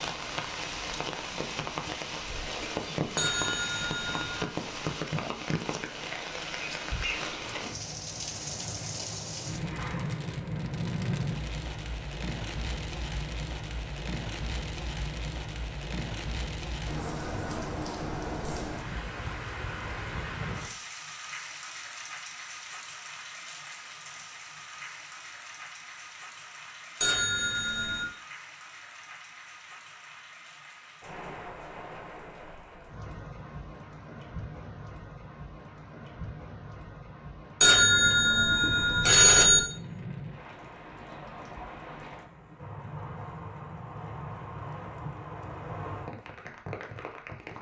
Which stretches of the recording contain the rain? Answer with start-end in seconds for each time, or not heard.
0.0-47.5.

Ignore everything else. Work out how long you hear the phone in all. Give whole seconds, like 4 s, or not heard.
4 s.